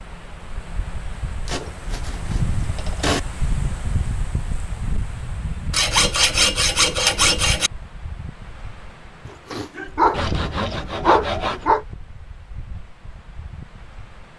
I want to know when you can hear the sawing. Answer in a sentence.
You can hear the sawing from 1.4 to 3.2 s, from 5.7 to 7.7 s and from 10.1 to 11.7 s.